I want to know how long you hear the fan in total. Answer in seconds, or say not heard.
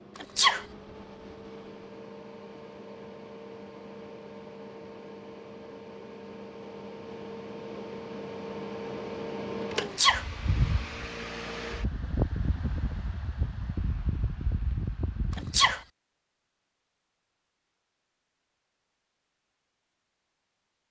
16 s.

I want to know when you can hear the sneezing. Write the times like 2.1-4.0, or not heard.
0.1-0.7, 9.8-10.2, 15.3-15.8.